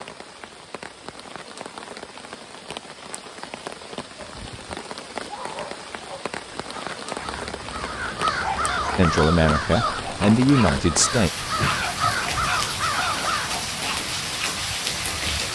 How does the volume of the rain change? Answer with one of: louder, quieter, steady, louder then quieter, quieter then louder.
louder.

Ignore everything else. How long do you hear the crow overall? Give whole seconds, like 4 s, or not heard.
7 s.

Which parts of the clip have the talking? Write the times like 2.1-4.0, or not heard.
8.9-11.3.